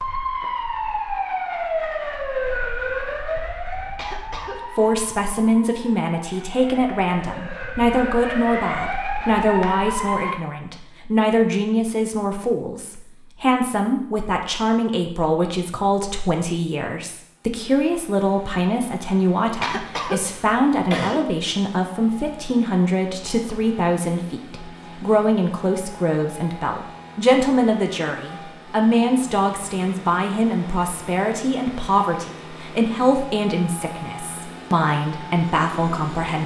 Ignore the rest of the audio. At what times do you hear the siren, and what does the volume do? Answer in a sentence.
The siren can be heard from 0.0 to 10.3 s, getting quieter then louder.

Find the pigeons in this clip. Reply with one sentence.
You can't hear the pigeons here.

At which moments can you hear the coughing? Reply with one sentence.
The coughing can be heard from 4.0 to 4.9 s and from 19.6 to 21.2 s.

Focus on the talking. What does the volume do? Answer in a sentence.
The volume of the talking stays about the same.